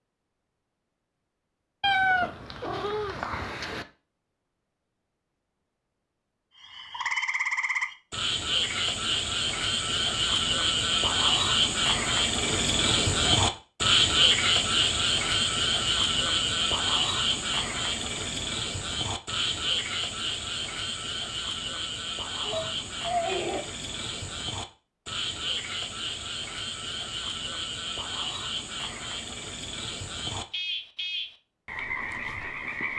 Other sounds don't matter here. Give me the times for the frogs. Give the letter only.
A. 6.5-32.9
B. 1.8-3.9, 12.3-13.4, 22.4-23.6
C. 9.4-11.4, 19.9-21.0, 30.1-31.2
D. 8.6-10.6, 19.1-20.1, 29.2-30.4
A.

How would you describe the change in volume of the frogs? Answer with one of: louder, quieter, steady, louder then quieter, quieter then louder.
quieter.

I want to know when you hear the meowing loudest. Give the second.
2 s.